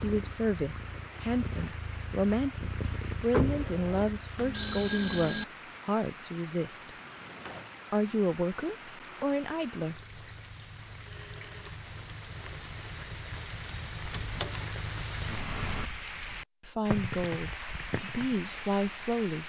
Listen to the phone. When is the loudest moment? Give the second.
5 s.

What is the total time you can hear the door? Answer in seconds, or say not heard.
2 s.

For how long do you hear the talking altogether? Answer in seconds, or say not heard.
12 s.